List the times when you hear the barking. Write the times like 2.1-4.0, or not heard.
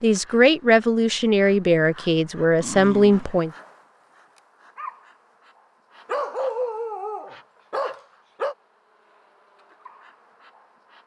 2.6-3.4, 6.0-8.6.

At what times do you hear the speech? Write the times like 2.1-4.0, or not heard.
0.0-3.5.